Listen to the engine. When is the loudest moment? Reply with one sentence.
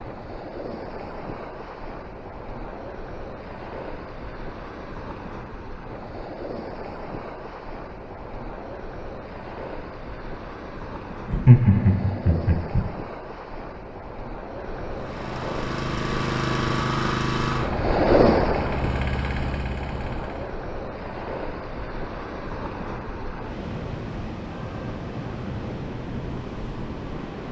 The volume of the engine peaks at 17 seconds.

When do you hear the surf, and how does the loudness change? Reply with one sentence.
The surf can be heard from 0.0 to 27.4 s, getting louder then quieter.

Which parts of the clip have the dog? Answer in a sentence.
You can't hear the dog here.